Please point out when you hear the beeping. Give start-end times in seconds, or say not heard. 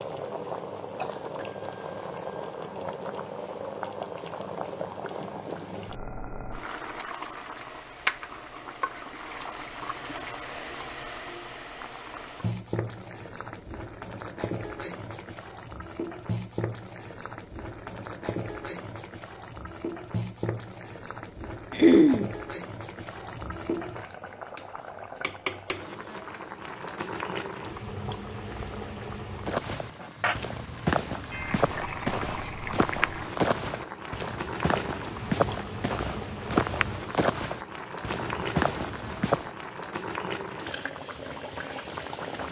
not heard.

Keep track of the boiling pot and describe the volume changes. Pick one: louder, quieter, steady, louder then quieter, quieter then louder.
steady.